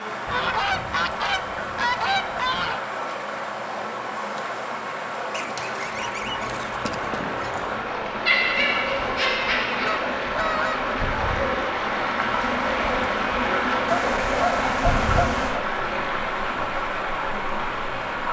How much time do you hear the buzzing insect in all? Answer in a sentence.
The buzzing insect can be heard for 18 seconds in total.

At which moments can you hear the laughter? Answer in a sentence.
The laughter can be heard from 8.2 to 9.9 s.